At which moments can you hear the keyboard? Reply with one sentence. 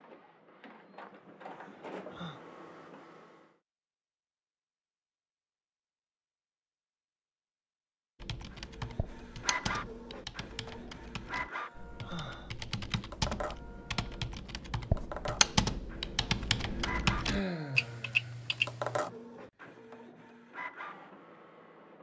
The keyboard can be heard from 8.2 to 19.0 s.